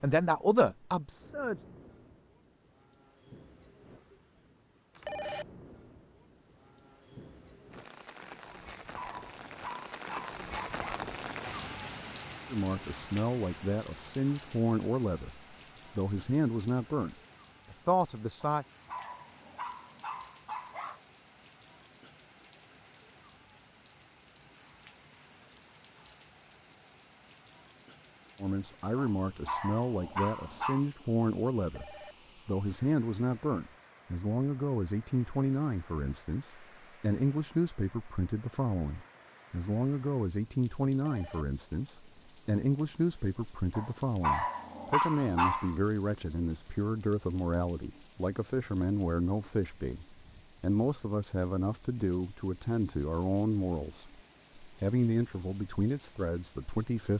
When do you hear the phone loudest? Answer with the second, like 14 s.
5 s.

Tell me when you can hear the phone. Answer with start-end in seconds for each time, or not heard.
5.0-5.5, 31.6-32.1, 40.9-41.5.